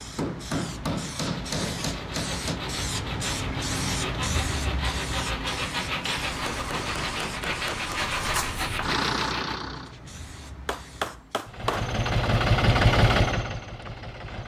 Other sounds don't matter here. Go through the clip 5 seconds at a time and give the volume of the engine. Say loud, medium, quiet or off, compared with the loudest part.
off, medium, loud.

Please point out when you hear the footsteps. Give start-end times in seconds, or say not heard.
not heard.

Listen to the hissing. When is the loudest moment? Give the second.
4 s.